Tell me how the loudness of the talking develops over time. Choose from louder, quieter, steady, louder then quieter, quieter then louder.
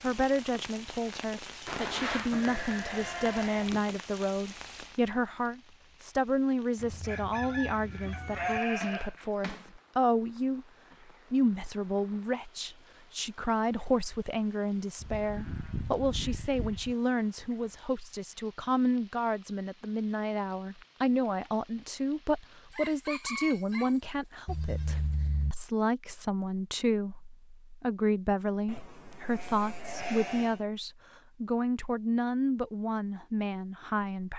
steady.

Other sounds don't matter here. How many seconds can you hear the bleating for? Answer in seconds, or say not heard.
9 s.